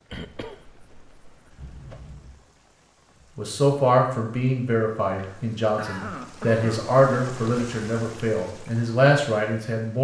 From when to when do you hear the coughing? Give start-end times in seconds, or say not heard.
0.1-2.1, 5.2-6.8.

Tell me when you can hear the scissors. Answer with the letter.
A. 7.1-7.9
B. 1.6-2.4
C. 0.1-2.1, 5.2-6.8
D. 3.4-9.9
B.